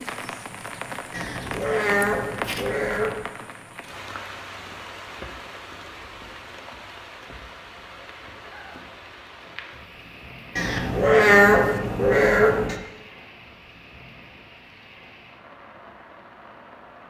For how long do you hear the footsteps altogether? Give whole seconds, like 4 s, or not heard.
not heard.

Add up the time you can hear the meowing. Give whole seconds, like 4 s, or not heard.
4 s.